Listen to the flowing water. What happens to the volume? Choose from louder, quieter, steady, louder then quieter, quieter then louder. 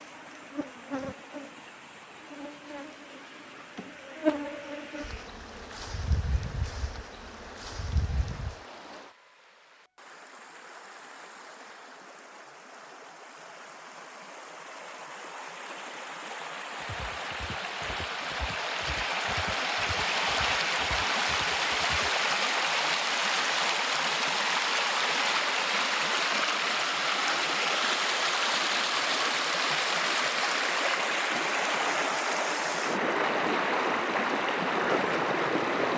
louder.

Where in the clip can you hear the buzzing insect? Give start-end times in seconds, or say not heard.
0.0-8.6.